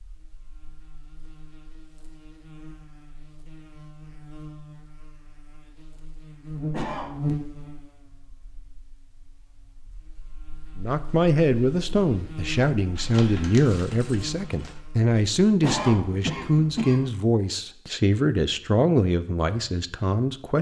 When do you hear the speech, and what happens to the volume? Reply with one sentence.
You can hear the speech from 10.8 to 20.5 s, at a steady volume.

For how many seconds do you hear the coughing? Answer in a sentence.
You can hear the coughing for 2 seconds altogether.